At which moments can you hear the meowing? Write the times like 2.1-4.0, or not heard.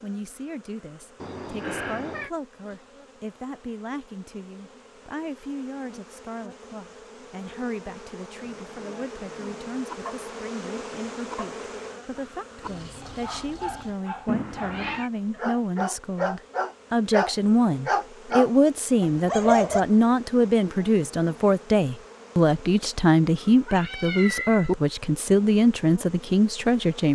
1.1-2.3, 14.2-15.1, 23.4-24.8.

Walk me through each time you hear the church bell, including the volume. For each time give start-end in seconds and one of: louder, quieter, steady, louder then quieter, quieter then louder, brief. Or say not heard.
not heard.